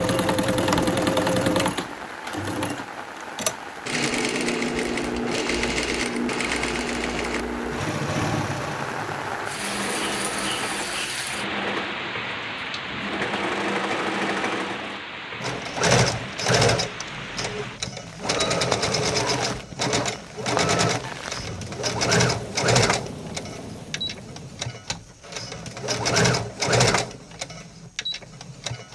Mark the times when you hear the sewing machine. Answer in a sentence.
The sewing machine can be heard from 0.0 to 28.9 s.